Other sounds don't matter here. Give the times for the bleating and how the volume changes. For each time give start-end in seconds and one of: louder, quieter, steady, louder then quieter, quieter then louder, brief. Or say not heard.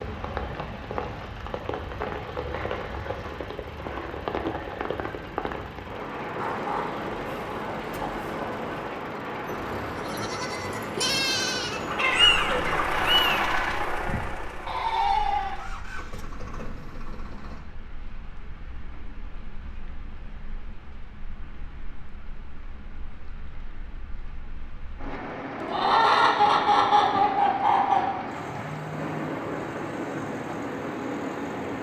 9.9-15.7 quieter then louder.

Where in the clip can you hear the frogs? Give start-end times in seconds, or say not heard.
not heard.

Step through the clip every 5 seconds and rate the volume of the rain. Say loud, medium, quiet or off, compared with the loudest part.
loud, loud, loud, quiet, quiet, loud, loud.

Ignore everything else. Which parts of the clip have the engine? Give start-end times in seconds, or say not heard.
0.2-17.6, 28.2-31.7.